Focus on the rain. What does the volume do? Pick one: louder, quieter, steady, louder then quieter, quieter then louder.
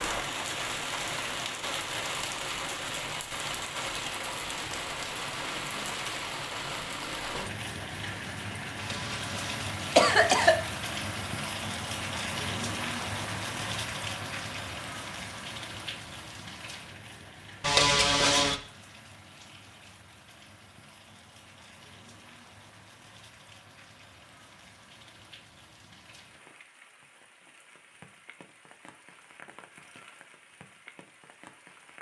quieter.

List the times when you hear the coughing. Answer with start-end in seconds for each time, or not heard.
8.8-10.6, 17.6-18.6.